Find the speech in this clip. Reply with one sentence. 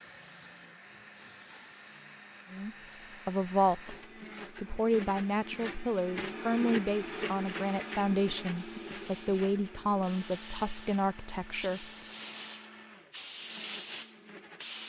The speech can be heard from 2.5 to 11.9 s.